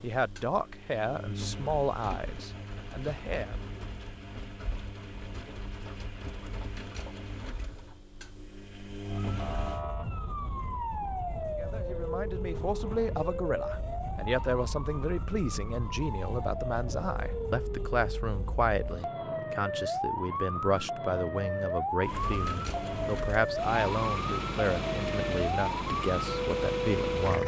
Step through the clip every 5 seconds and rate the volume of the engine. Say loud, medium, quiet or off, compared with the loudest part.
medium, medium, off, off, loud, loud.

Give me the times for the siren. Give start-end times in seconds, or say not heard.
9.0-27.4.